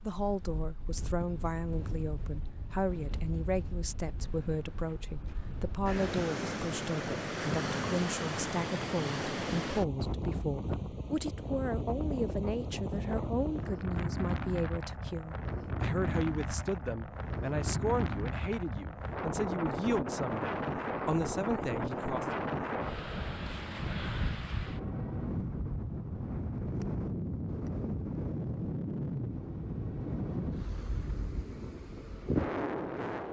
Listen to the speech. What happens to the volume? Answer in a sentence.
The loudness of the speech stays about the same.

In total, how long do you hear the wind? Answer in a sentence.
The wind can be heard for 33 seconds in total.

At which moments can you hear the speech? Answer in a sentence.
You can hear the speech from 0.0 to 22.4 s.